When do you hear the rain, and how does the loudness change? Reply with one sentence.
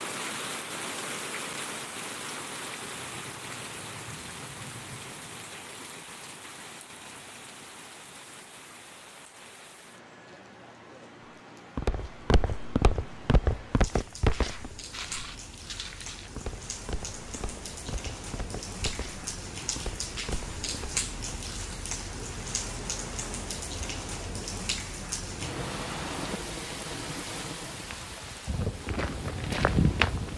You can hear the rain from 0.0 to 30.3 s, getting quieter then louder.